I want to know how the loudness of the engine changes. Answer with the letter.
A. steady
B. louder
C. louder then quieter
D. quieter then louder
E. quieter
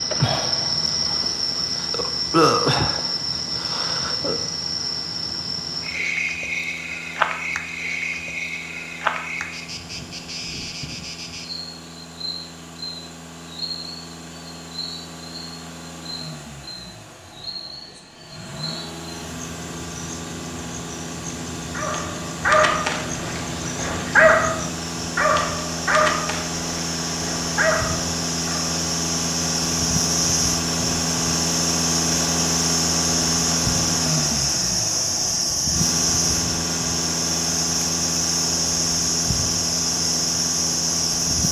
B.